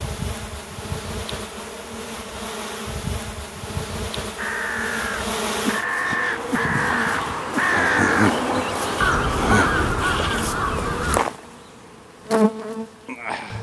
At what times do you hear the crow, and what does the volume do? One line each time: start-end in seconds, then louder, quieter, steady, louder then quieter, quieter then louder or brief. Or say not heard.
4.3-8.3 louder
9.0-11.2 brief.